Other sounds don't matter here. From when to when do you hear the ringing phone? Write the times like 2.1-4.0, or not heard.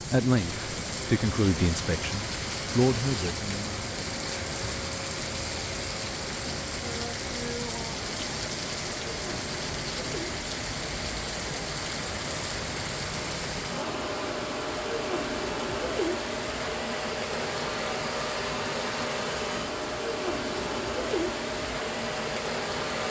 not heard.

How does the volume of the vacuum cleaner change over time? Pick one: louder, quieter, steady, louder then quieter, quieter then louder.
louder.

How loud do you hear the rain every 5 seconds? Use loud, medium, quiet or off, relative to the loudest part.
loud, loud, loud, medium, medium.